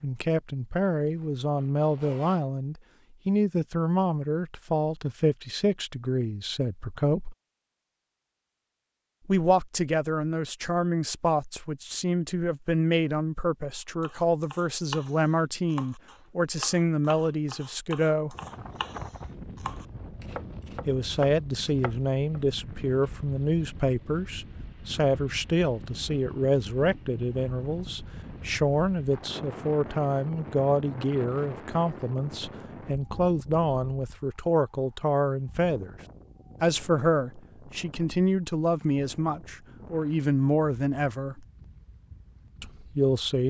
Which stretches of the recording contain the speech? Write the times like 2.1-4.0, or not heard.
0.0-7.3, 9.2-18.4, 20.9-36.0, 36.6-41.5, 42.6-43.4.